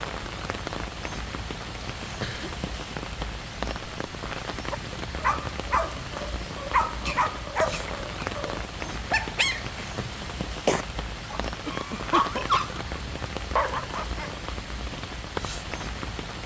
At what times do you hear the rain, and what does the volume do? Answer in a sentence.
You can hear the rain from 0.0 to 16.4 s, at a steady volume.